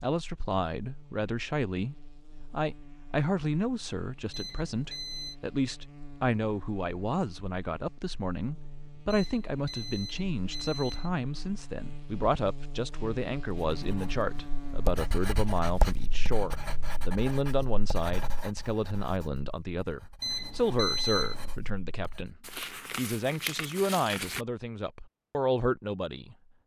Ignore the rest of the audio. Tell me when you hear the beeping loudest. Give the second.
21 s.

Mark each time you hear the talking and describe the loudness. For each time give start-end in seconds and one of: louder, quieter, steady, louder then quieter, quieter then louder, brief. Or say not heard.
0.0-26.4 steady.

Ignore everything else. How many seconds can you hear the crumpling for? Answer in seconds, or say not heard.
2 s.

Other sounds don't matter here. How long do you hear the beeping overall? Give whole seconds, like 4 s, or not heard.
4 s.